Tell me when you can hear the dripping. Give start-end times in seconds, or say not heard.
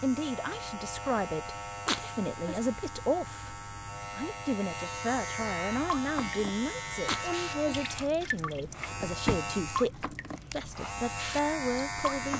5.7-12.3.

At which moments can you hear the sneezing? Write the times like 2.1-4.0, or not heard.
1.9-2.6, 7.0-7.8.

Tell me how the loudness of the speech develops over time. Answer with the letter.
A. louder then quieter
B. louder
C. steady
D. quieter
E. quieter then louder
C.